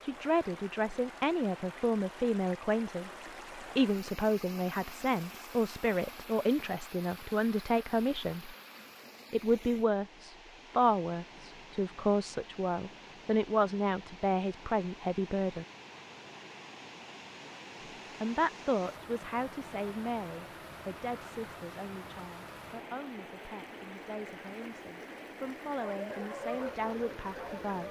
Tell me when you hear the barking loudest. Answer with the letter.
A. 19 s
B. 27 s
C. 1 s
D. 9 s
B.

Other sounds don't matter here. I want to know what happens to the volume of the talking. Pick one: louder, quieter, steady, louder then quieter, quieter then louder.
quieter.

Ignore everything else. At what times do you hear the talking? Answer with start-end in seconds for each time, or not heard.
0.0-8.6, 9.3-15.7, 18.2-27.8.